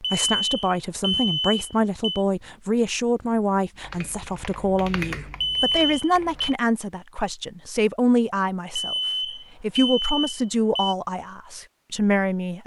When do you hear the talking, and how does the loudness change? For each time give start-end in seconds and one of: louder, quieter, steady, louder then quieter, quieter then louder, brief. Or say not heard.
0.0-12.6 steady.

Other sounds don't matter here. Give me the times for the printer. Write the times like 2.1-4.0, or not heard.
not heard.